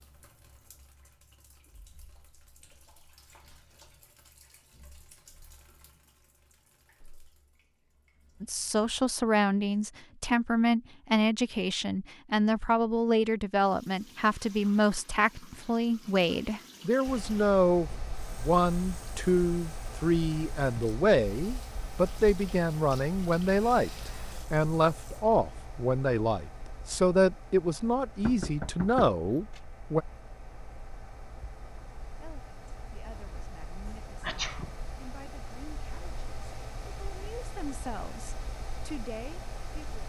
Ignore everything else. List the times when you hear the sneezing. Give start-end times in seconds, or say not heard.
34.2-34.8.